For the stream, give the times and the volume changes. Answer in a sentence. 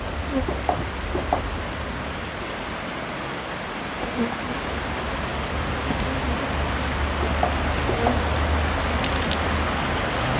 The stream can be heard from 0.0 to 10.3 s, getting louder.